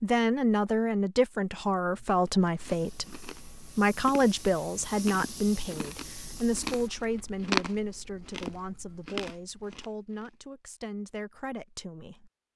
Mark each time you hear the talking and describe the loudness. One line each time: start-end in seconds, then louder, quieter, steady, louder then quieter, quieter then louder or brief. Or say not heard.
0.0-12.3 quieter.